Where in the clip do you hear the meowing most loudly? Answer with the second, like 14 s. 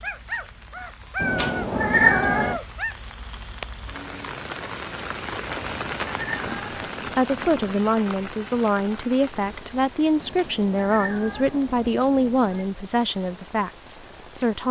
2 s.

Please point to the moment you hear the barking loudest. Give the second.
1 s.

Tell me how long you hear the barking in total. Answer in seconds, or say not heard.
3 s.